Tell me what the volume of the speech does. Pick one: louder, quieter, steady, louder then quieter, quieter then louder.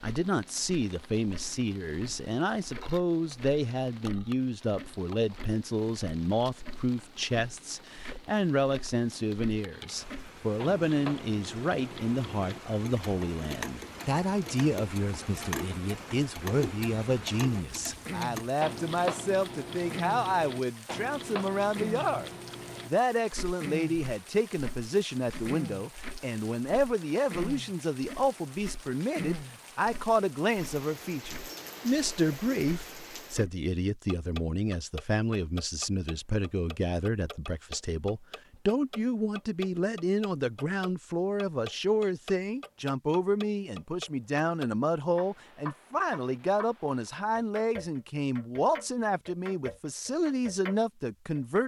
steady.